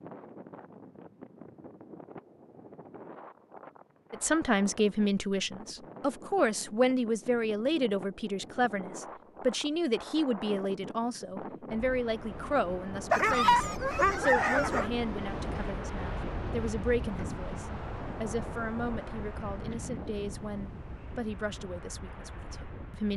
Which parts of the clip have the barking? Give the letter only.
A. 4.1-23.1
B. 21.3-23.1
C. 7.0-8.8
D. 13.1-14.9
D.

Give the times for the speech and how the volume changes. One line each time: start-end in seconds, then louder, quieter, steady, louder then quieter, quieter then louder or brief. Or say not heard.
4.1-23.1 quieter.